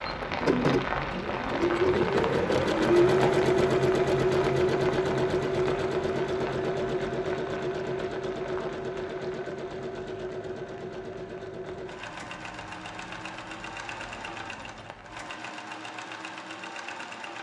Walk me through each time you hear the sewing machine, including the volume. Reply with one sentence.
The sewing machine can be heard from 0.0 to 17.3 s, getting quieter.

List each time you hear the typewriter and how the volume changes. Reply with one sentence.
You can't hear the typewriter here.